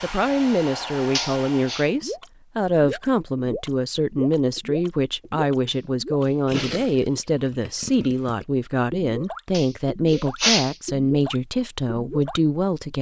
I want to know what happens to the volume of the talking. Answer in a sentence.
The volume of the talking stays about the same.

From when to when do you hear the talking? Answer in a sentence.
The talking can be heard from 0.0 to 12.9 s.